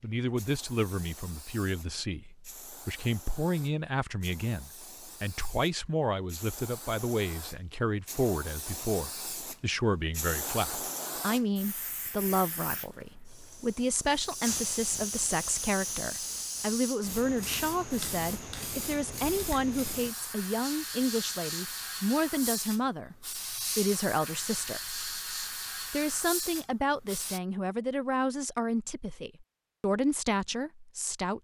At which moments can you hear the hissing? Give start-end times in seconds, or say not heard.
0.0-27.4.